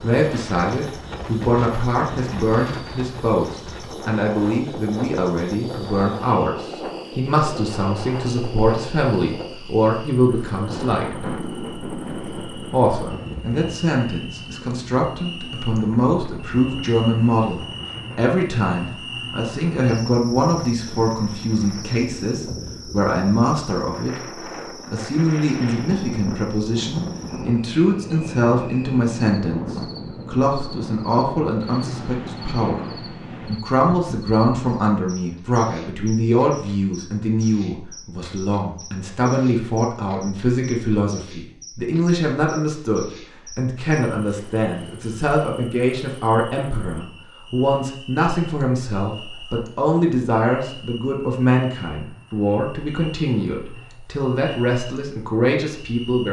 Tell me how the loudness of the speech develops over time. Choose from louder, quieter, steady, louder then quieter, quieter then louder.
steady.